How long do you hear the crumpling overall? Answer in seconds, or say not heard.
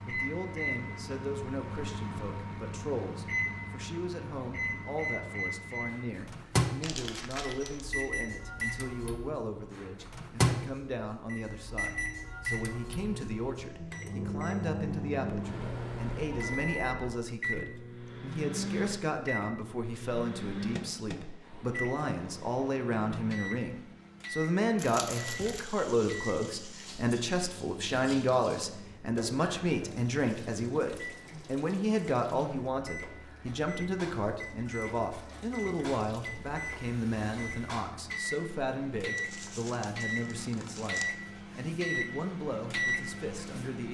4 s.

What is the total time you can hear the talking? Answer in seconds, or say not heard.
44 s.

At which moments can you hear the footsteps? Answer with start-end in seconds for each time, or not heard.
not heard.